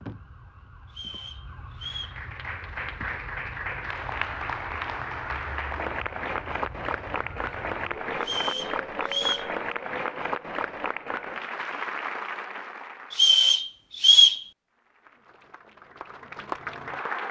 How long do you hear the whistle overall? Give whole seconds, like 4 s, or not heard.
4 s.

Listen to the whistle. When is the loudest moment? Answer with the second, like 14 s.
14 s.